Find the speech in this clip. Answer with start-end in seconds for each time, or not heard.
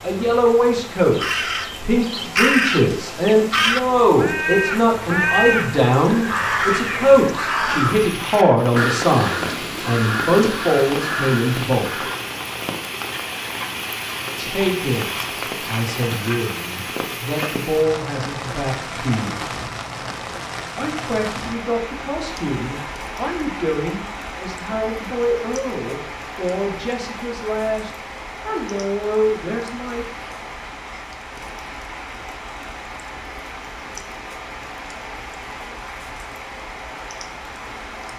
0.0-11.8, 14.3-19.5, 20.8-30.1.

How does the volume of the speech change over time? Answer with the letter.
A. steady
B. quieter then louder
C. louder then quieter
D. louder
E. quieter
E.